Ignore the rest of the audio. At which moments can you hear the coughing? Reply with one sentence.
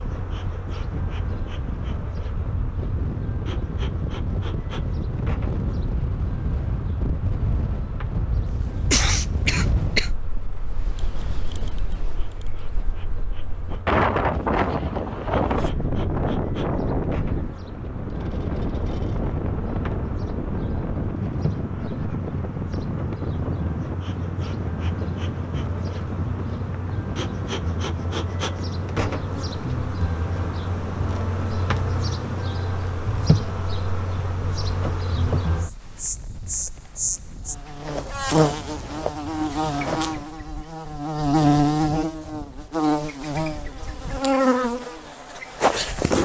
You can hear the coughing from 8.4 to 10.1 s.